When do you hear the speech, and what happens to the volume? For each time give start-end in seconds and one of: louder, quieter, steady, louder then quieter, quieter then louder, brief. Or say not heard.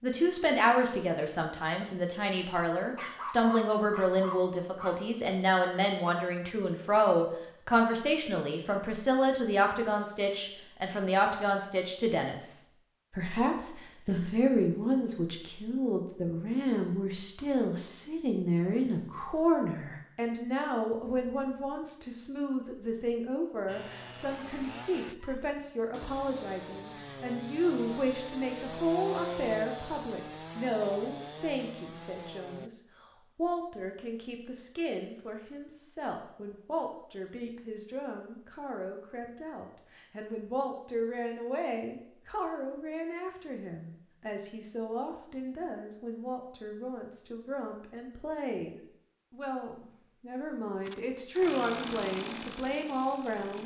0.0-53.6 quieter.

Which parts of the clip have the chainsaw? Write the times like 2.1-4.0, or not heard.
23.6-32.7, 50.8-53.6.